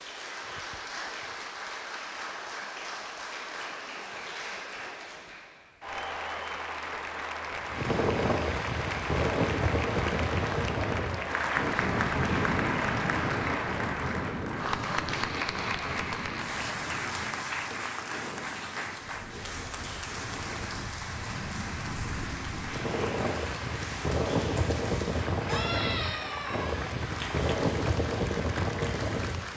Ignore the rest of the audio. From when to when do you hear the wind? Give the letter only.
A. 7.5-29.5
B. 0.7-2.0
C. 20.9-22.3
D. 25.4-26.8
A.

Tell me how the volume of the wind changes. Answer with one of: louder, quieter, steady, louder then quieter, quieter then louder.
quieter then louder.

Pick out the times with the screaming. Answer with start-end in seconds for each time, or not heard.
25.4-26.8.